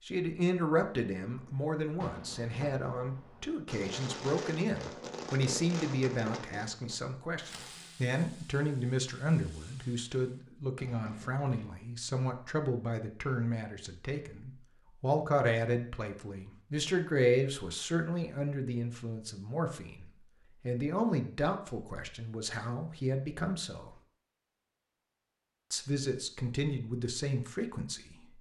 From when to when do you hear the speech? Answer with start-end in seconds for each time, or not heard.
0.1-23.9, 25.7-28.2.